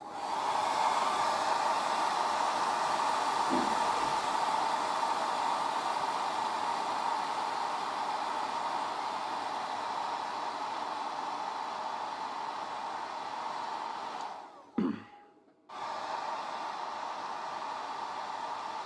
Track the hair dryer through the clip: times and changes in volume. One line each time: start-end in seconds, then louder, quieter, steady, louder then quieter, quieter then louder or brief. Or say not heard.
0.0-18.8 quieter.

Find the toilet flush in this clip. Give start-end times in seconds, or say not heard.
3.5-4.3.